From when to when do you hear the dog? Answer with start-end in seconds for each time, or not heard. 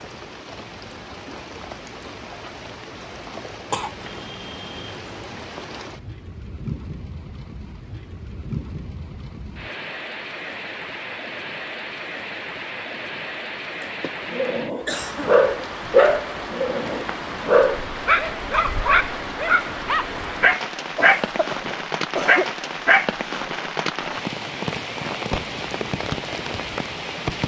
14.3-23.1.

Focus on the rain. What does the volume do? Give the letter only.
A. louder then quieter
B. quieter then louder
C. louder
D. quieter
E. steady
C.